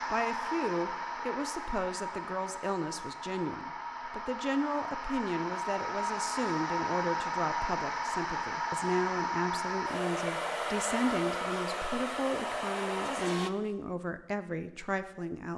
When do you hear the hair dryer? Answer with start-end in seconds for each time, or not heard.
0.0-13.5.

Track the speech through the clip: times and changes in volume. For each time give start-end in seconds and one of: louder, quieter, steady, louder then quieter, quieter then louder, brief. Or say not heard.
0.1-15.5 steady.